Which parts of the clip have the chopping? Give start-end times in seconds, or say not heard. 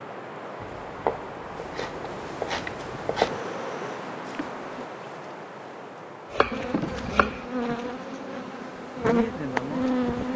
0.6-3.3, 6.3-7.5.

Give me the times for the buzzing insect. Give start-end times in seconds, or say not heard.
3.2-4.8, 6.5-10.3.